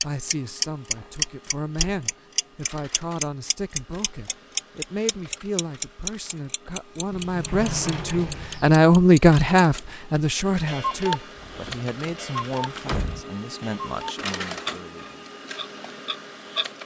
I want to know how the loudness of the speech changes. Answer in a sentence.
The loudness of the speech goes up, then down.